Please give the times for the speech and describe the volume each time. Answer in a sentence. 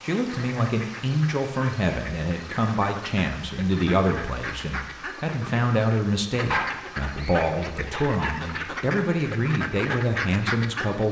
You can hear the speech from 0.0 to 11.0 s, at a steady volume.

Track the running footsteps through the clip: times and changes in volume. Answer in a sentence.
The running footsteps can't be heard in this clip.